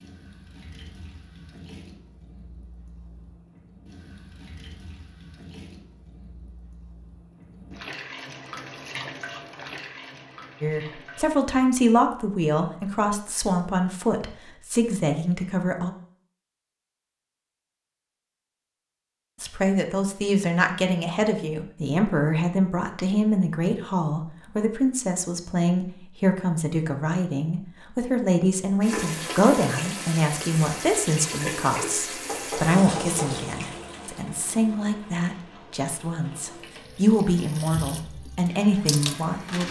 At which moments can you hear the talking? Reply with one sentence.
The talking can be heard from 10.6 to 15.9 s and from 19.4 to 39.6 s.